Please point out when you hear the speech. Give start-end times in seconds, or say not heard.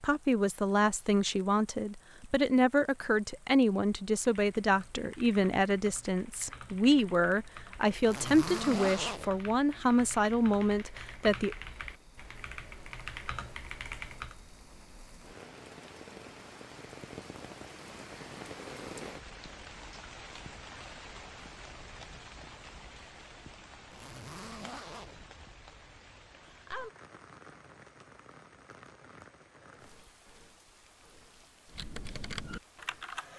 0.0-11.6.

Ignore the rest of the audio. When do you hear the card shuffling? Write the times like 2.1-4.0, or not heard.
not heard.